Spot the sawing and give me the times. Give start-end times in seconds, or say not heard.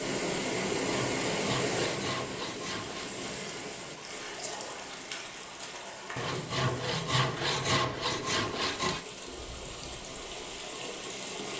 0.5-3.1, 6.2-9.1.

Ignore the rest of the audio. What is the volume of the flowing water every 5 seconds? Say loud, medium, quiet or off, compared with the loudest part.
loud, medium, medium.